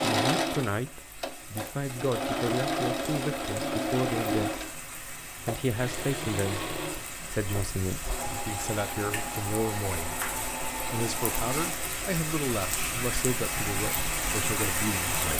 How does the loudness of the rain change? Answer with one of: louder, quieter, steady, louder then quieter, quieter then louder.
louder.